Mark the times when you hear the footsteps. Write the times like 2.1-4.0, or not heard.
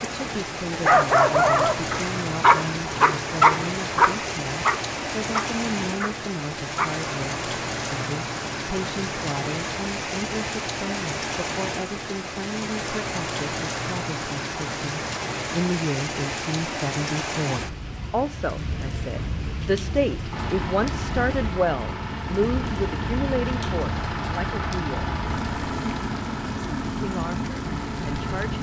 not heard.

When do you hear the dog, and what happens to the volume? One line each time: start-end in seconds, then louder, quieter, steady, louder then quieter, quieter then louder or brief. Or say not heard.
0.2-7.0 quieter.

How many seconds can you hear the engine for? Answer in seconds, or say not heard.
8 s.